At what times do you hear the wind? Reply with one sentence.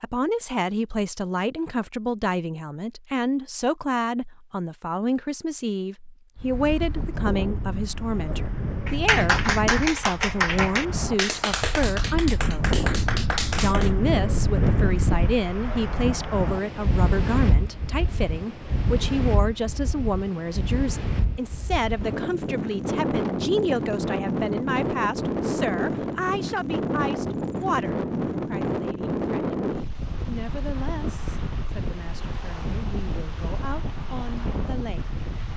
The wind can be heard from 6.3 to 35.5 s.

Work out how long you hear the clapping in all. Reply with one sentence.
The clapping can be heard for 5 seconds in total.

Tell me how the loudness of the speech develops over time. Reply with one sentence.
The volume of the speech goes down.